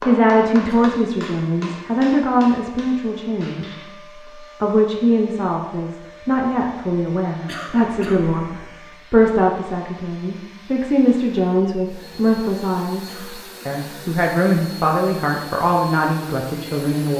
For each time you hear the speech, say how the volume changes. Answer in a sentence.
The speech can be heard from 0.0 to 17.1 s, at a steady volume.